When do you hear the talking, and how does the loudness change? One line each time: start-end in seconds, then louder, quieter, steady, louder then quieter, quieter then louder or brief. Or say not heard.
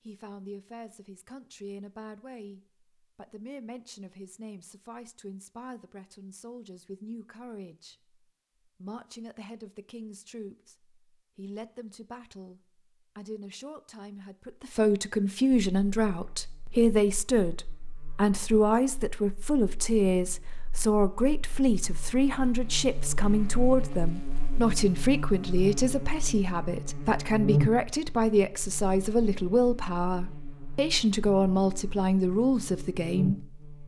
0.1-33.6 louder.